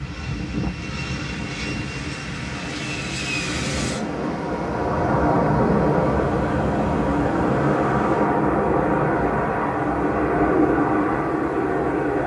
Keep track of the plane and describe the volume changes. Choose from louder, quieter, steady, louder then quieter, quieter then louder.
louder.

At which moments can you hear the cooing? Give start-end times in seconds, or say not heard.
not heard.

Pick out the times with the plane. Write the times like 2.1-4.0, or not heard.
0.0-12.2.